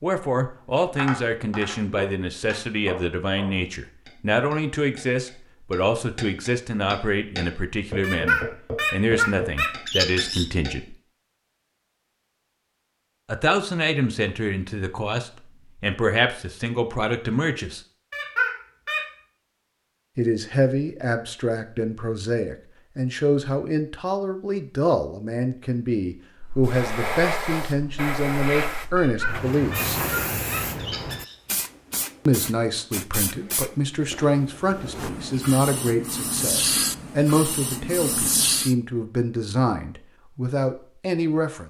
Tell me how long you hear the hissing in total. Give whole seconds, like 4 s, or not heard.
12 s.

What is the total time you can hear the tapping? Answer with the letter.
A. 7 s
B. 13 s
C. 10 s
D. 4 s
C.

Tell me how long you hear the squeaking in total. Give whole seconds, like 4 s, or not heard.
6 s.